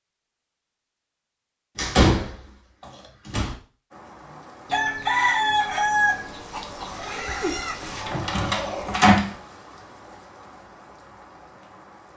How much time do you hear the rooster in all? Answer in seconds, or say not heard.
4 s.